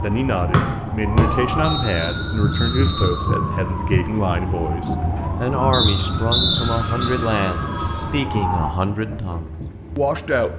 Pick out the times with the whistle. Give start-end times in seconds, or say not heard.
0.5-3.1, 5.7-7.1.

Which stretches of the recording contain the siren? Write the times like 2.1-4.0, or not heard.
0.0-8.8.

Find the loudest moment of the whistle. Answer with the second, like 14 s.
6 s.